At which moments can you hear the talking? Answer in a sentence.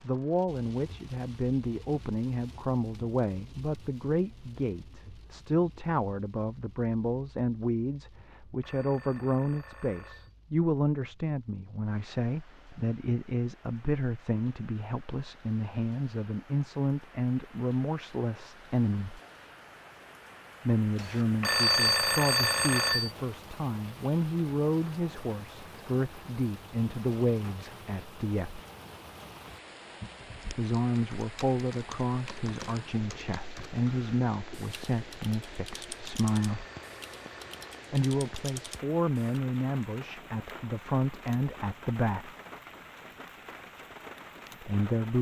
You can hear the talking from 0.0 to 19.2 s, from 20.6 to 28.6 s, from 30.5 to 36.6 s, from 37.9 to 42.3 s and from 44.6 to 45.1 s.